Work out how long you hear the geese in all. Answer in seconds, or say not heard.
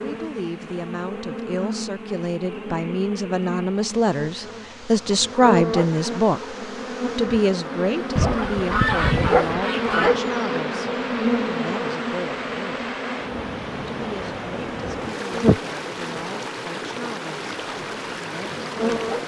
2 s.